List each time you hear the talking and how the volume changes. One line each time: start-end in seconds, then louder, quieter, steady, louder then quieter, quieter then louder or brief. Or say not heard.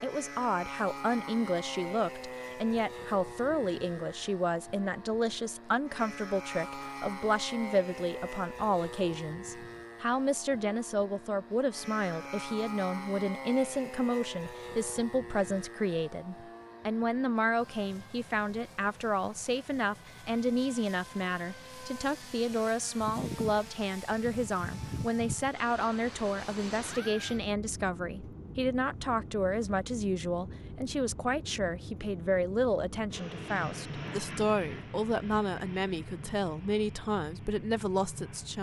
0.0-38.5 steady.